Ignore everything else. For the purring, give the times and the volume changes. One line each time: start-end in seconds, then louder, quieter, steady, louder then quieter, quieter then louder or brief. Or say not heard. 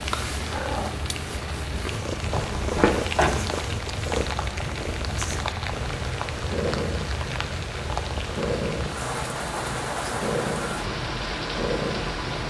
0.0-12.4 steady.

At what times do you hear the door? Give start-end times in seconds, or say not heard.
2.3-3.8.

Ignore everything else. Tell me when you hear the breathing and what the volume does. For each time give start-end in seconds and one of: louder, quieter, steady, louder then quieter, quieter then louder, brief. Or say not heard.
not heard.